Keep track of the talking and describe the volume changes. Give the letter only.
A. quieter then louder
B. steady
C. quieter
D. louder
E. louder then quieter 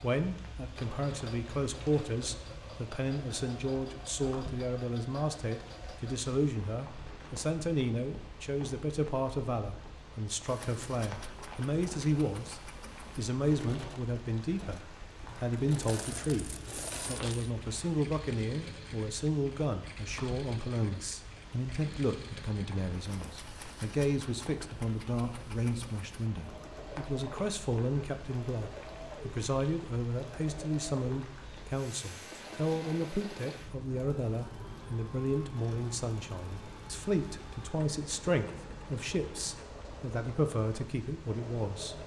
B.